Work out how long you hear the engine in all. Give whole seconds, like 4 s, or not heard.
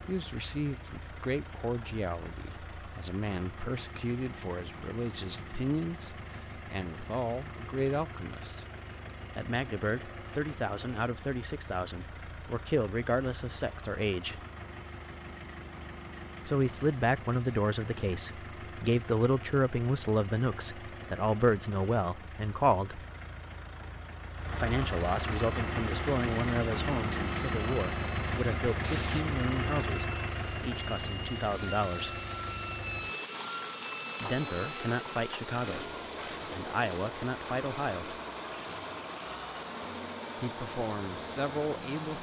42 s.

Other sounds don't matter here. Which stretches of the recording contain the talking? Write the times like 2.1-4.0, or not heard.
0.1-8.7, 9.3-14.4, 16.4-23.0, 24.6-32.2, 34.2-38.1, 40.4-42.1.